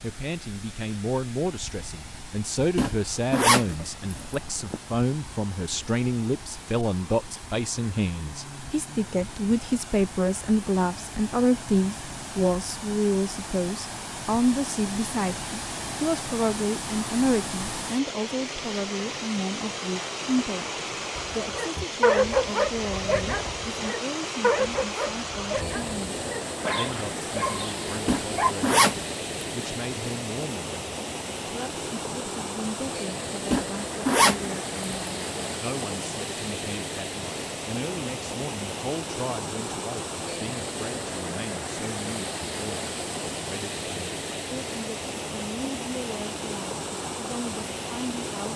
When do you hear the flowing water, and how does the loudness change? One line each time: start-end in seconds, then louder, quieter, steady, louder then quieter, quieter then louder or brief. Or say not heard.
0.0-48.5 louder.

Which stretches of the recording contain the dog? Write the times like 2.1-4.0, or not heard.
21.1-28.6.